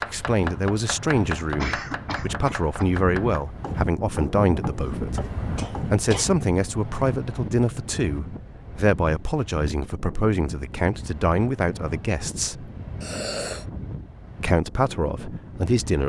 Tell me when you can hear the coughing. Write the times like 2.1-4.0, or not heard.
1.6-2.9, 5.5-6.3, 13.0-13.7.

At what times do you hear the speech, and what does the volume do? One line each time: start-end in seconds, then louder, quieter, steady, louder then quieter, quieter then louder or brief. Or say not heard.
0.1-5.2 quieter then louder
5.9-12.7 steady
14.4-16.0 brief.